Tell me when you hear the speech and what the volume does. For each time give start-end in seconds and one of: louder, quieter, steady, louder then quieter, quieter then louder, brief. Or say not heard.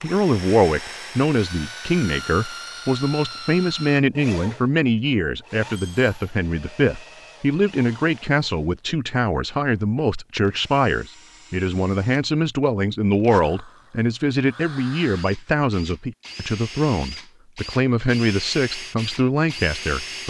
0.0-20.2 steady.